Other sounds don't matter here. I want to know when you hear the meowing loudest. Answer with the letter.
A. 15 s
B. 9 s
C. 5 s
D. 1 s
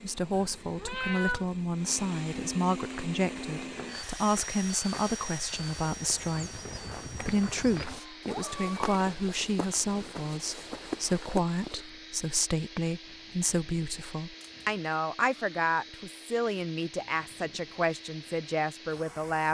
D.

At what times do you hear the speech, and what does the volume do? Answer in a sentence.
The speech can be heard from 0.0 to 19.4 s, at a steady volume.